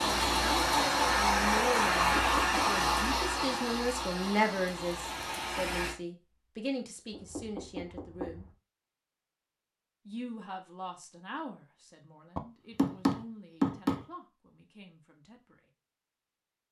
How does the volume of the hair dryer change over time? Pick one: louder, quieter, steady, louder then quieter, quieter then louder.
quieter.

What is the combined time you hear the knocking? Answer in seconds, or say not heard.
4 s.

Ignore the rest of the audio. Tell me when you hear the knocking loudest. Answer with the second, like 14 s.
14 s.